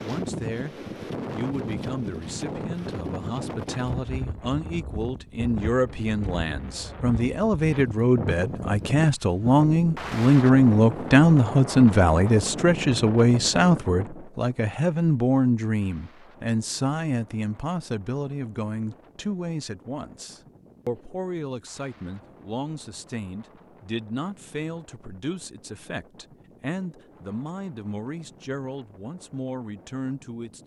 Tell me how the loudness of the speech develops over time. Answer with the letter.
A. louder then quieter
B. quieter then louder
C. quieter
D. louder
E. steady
A.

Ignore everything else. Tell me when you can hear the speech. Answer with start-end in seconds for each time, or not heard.
0.0-30.6.